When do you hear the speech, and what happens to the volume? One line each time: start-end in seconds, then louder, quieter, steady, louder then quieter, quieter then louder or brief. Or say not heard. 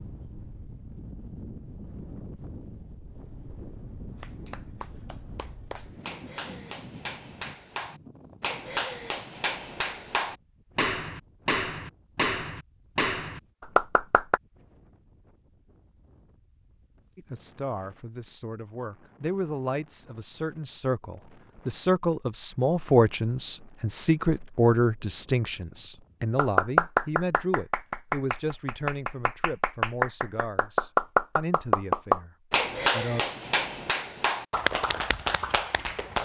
17.1-33.2 louder then quieter.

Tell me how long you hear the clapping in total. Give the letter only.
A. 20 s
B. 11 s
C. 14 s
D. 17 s
A.